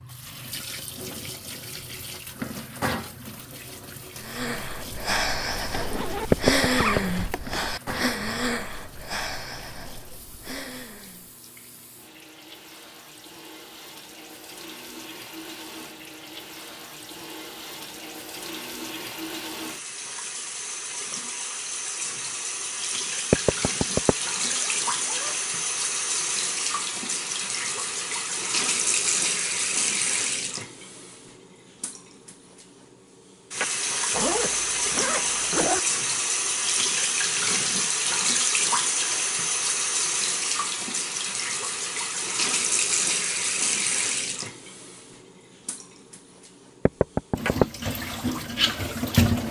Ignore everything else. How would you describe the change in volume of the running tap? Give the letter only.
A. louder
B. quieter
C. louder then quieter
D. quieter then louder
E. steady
A.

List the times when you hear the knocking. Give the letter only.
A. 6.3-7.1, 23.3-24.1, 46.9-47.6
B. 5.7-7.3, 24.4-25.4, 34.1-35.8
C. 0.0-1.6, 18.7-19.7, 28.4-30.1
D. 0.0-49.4
A.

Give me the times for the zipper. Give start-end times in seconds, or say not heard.
5.7-7.3, 24.4-25.4, 34.1-35.8.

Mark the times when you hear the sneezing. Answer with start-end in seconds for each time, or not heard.
not heard.